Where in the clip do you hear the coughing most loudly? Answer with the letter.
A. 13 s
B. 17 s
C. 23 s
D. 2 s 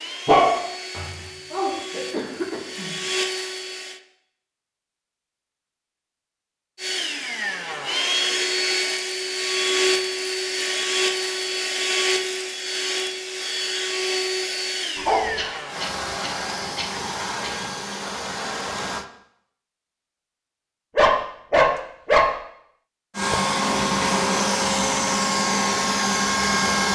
D.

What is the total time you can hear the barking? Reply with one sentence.
You can hear the barking for 3 seconds altogether.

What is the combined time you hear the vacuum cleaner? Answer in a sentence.
The vacuum cleaner can be heard for 20 seconds in total.